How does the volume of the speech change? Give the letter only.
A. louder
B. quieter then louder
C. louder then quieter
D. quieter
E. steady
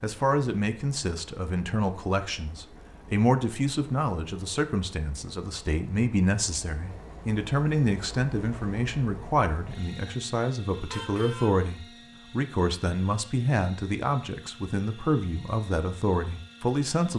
E.